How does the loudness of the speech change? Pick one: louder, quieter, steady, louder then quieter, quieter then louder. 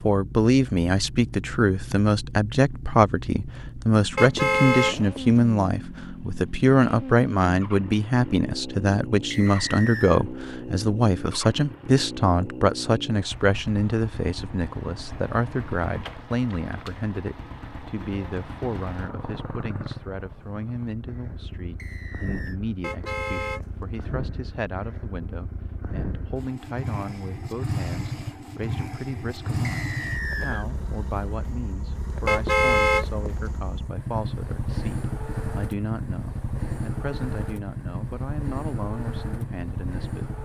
quieter.